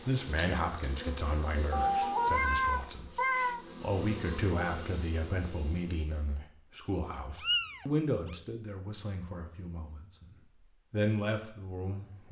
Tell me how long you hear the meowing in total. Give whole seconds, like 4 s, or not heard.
3 s.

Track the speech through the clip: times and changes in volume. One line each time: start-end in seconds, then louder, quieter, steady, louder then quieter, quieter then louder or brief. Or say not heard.
0.0-10.2 steady
10.9-12.2 brief.